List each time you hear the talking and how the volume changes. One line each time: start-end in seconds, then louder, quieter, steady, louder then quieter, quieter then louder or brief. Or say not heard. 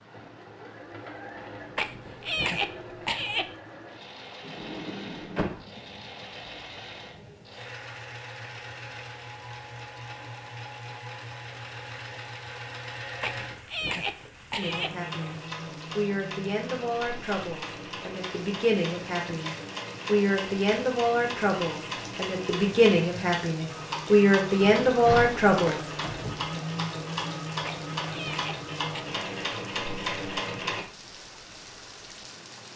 14.6-25.8 louder.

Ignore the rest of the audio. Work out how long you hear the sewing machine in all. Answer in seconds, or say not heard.
31 s.